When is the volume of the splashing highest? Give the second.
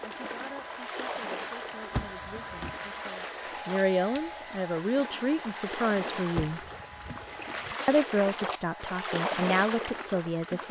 9 s.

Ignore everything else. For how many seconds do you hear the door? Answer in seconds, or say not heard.
2 s.